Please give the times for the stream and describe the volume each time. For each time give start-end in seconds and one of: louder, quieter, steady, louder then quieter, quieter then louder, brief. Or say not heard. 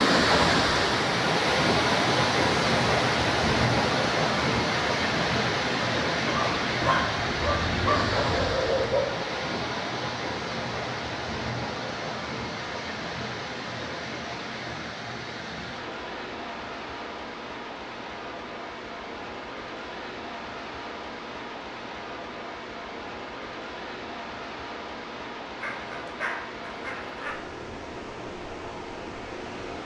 0.0-29.8 quieter.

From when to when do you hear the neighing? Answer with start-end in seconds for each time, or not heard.
not heard.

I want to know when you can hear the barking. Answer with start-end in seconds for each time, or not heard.
6.2-9.2, 25.6-27.4.